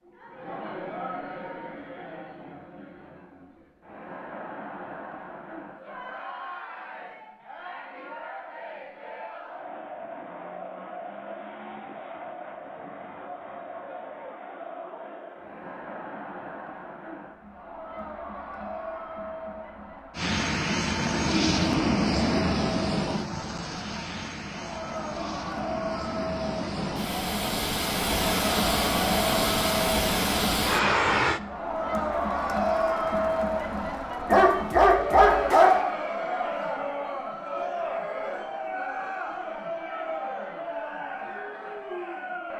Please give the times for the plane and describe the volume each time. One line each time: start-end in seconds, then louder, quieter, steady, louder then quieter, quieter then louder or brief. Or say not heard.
20.1-31.4 quieter then louder.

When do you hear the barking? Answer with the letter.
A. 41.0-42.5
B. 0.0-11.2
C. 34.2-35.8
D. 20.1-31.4
C.